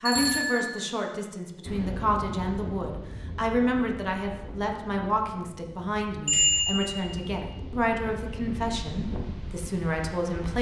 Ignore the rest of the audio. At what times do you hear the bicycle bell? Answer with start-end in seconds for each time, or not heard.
0.1-0.8, 6.2-7.2.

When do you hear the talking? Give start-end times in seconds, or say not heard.
0.0-10.5.